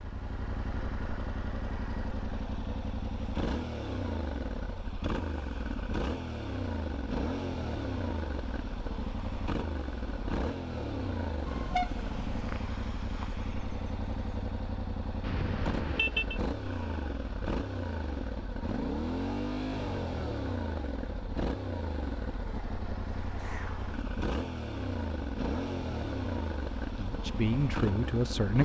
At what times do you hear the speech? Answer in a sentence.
You can hear the speech from 26.9 to 28.5 s.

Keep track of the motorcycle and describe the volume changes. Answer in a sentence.
The volume of the motorcycle stays about the same.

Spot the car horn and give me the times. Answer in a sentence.
The car horn can be heard from 11.4 to 12.3 s and from 15.2 to 16.4 s.